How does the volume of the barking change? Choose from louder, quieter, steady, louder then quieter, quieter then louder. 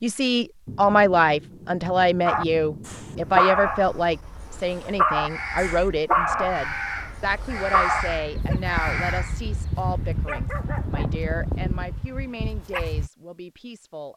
quieter.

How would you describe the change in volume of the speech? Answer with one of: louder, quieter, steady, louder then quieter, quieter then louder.
quieter.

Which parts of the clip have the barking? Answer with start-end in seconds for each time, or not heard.
2.2-13.1.